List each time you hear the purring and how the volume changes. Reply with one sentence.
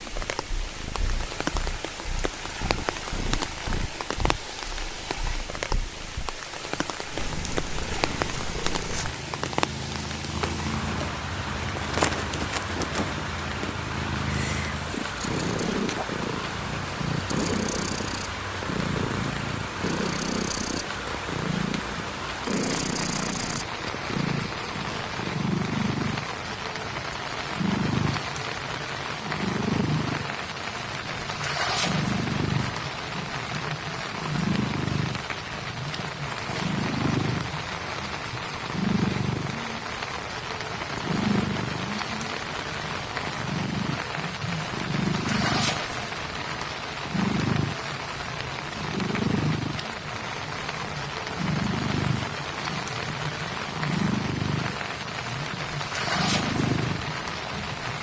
You can hear the purring from 0.1 to 57.9 s, getting louder.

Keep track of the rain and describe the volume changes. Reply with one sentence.
The loudness of the rain stays about the same.